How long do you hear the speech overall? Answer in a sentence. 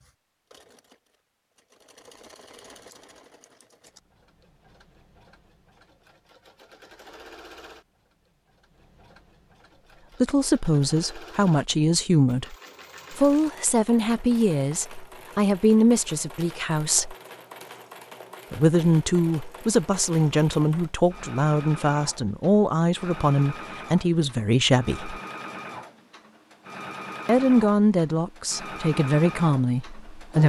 The speech can be heard for 17 seconds in total.